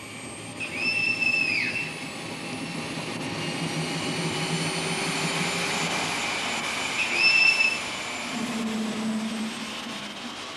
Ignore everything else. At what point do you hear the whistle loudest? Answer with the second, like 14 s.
7 s.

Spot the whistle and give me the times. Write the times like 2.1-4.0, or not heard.
0.6-2.5, 7.0-7.8.